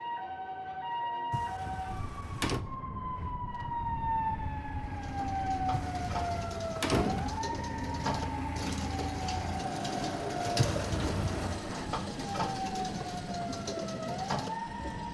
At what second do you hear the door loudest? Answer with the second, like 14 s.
7 s.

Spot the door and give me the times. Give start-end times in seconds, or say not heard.
1.3-2.6, 5.7-7.4, 10.6-11.7.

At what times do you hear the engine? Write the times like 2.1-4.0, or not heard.
3.1-15.0.